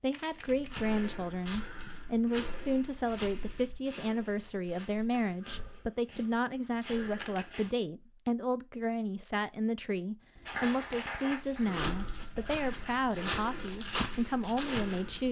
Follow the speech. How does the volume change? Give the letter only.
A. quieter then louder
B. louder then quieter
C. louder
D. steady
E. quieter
D.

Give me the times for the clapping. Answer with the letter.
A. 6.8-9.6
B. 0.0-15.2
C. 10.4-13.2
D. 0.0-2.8
C.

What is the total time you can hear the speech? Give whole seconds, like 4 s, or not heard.
15 s.